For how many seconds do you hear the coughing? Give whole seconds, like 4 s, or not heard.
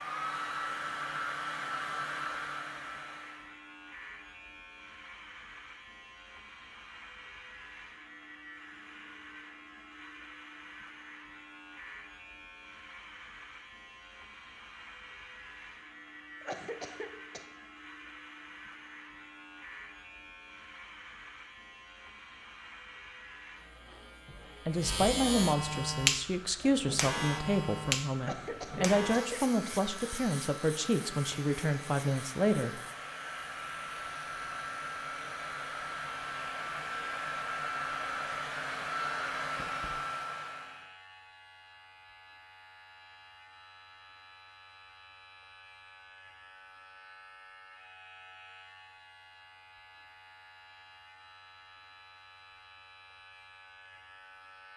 3 s.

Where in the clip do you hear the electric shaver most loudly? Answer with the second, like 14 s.
26 s.